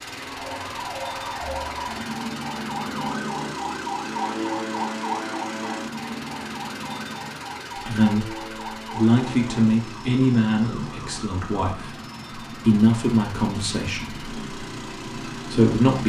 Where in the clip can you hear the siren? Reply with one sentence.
The siren can be heard from 0.0 to 15.9 s.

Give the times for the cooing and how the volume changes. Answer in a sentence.
You can't hear the cooing here.